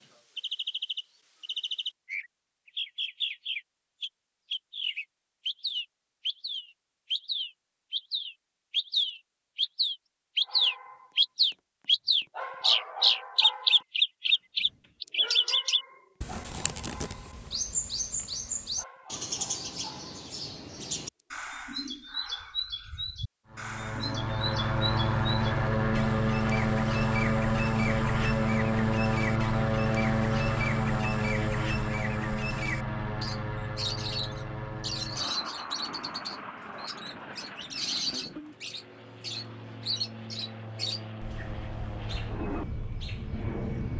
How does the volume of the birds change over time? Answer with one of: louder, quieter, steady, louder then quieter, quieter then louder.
louder then quieter.